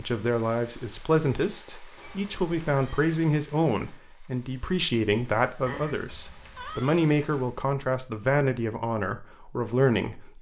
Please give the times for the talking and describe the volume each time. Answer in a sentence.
You can hear the talking from 0.0 to 10.3 s, at a steady volume.